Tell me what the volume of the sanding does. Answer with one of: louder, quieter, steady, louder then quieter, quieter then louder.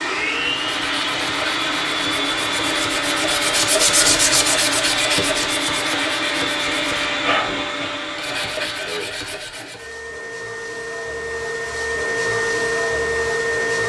louder then quieter.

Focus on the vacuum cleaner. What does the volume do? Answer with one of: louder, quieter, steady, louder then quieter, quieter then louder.
quieter then louder.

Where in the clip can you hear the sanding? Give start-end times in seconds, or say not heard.
0.5-9.9.